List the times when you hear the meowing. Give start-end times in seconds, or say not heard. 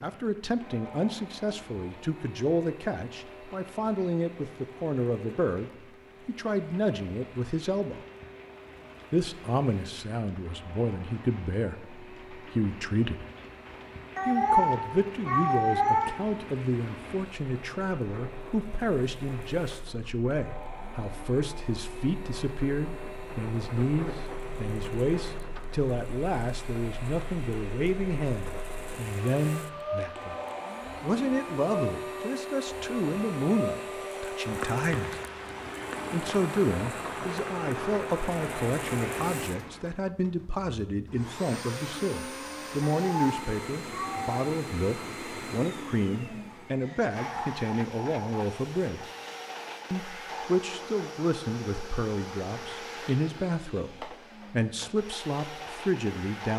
14.2-16.1, 42.9-44.4.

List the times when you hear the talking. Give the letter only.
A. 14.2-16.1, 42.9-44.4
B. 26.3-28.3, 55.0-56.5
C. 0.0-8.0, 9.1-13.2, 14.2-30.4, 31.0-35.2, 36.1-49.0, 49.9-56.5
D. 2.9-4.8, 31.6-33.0
C.